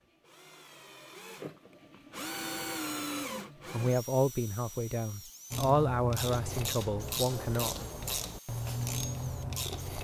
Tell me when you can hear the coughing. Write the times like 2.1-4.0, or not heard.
not heard.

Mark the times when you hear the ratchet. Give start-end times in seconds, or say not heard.
5.5-9.9.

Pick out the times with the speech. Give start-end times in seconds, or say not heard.
3.7-7.9.